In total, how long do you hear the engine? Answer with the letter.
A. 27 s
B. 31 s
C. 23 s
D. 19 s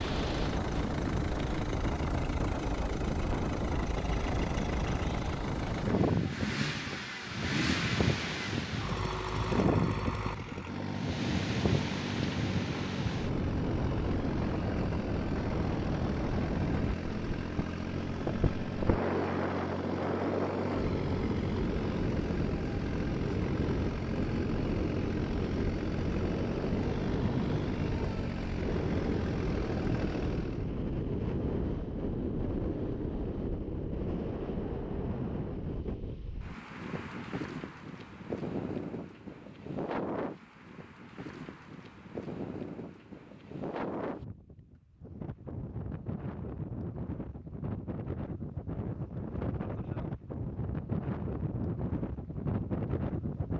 B.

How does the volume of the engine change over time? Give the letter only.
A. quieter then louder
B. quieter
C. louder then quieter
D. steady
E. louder
D.